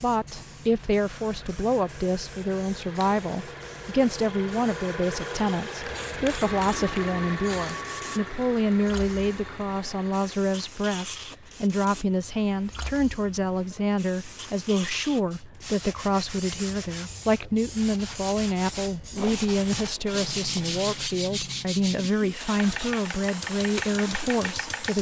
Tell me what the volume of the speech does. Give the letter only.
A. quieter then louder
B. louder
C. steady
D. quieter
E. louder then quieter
C.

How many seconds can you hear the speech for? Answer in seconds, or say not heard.
25 s.